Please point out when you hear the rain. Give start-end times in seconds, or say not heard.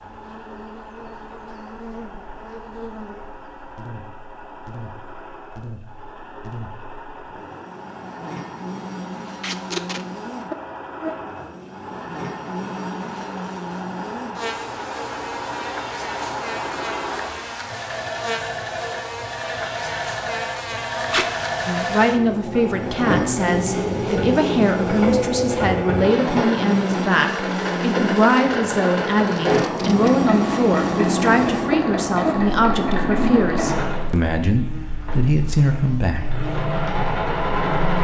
not heard.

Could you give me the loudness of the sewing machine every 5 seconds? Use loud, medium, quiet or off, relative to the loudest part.
quiet, quiet, medium, medium, loud, loud, loud, loud.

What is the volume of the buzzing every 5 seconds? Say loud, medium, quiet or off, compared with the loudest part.
quiet, medium, medium, medium, loud, loud, loud, medium.